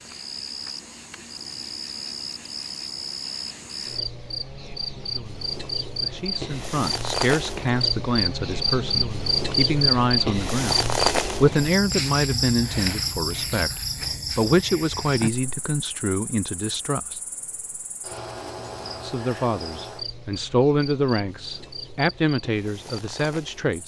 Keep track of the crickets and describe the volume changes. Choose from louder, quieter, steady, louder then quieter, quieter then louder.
louder then quieter.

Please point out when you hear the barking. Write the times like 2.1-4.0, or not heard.
not heard.